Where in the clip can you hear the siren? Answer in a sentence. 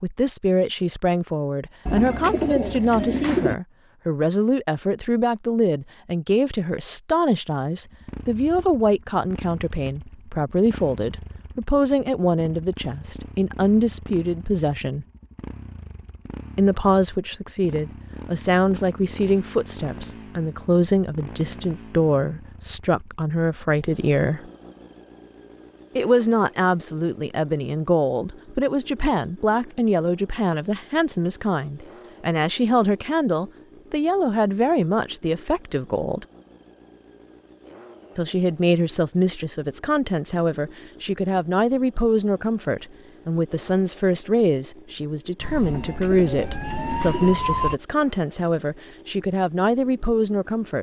The siren can be heard from 45.4 to 47.8 s.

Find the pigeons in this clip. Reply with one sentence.
The pigeons can be heard from 1.9 to 3.5 s and from 45.6 to 47.4 s.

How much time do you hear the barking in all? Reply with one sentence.
The barking can't be heard in this clip.